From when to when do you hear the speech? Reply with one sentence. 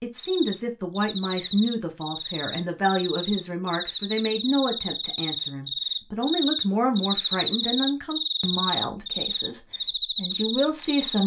You can hear the speech from 0.0 to 11.2 s.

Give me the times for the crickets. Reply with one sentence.
You can hear the crickets from 0.1 to 11.2 s.